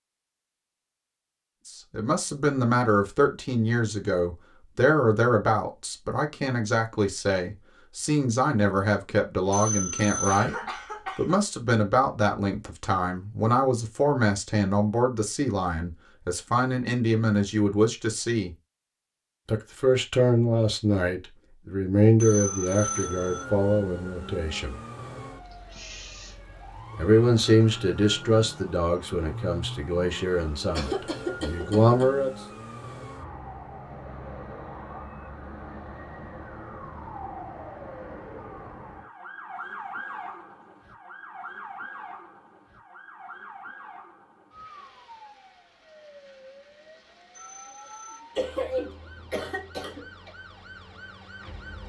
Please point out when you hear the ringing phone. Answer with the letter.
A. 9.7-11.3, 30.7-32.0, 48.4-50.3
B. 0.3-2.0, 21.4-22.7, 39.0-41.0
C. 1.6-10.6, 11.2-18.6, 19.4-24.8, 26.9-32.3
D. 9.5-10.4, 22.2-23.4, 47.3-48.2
D.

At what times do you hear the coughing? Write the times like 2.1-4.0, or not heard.
9.7-11.3, 30.7-32.0, 48.4-50.3.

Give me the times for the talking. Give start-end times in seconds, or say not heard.
1.6-10.6, 11.2-18.6, 19.4-24.8, 26.9-32.3.